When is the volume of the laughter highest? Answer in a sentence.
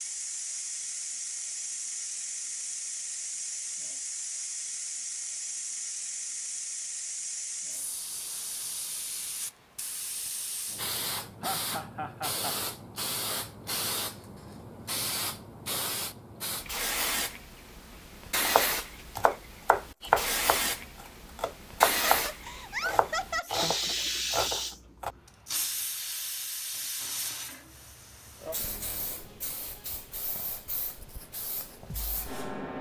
The volume of the laughter peaks at 23 seconds.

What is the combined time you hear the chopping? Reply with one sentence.
You can hear the chopping for 5 seconds altogether.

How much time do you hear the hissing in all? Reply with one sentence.
You can hear the hissing for 33 seconds altogether.